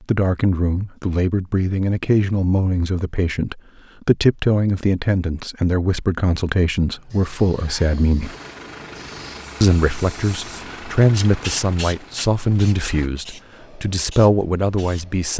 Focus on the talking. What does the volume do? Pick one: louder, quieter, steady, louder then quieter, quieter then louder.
steady.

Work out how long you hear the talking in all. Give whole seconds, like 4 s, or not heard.
14 s.